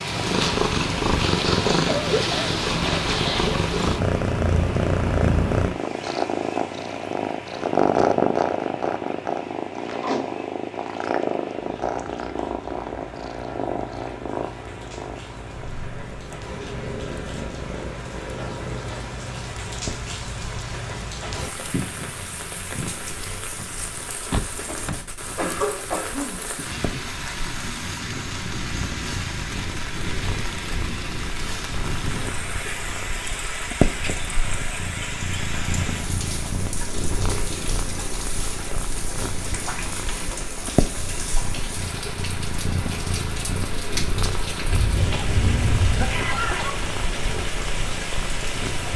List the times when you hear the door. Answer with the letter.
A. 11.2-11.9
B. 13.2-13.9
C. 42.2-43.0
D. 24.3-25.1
D.